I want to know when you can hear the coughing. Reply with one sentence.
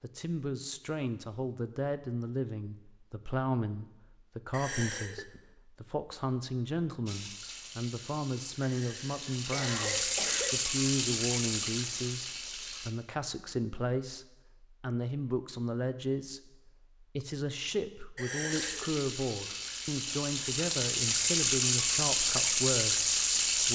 The coughing can be heard from 4.5 to 5.4 s, from 8.6 to 10.6 s and from 18.1 to 18.9 s.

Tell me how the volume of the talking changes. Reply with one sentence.
The volume of the talking stays about the same.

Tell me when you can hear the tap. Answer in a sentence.
The tap can be heard from 7.0 to 12.9 s and from 18.5 to 23.7 s.